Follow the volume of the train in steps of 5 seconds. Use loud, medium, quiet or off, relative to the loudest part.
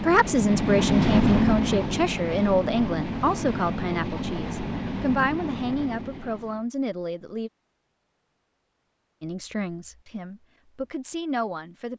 loud, medium, off.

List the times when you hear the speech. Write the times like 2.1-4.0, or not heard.
0.0-7.5, 9.2-11.9.